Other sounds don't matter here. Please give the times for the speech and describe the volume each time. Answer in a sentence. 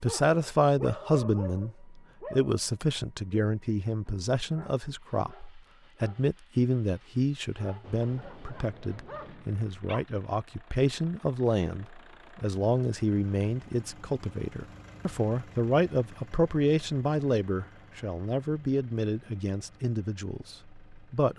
You can hear the speech from 0.0 to 21.3 s, at a steady volume.